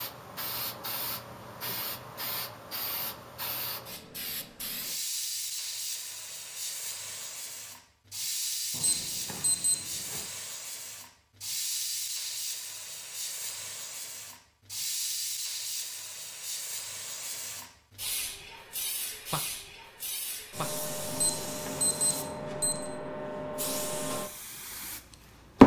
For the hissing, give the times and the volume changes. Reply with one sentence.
The hissing can be heard from 0.0 to 25.6 s, at a steady volume.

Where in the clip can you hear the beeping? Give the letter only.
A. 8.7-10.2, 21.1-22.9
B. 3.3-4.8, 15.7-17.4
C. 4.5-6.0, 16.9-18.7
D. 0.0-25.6
A.